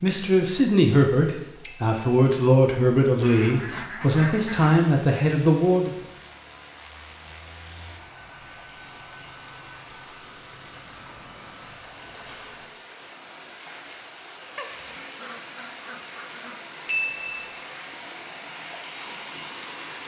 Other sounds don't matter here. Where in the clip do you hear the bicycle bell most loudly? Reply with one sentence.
The volume of the bicycle bell peaks at 17 seconds.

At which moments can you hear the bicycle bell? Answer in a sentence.
You can hear the bicycle bell from 1.6 to 2.2 s and from 16.9 to 17.5 s.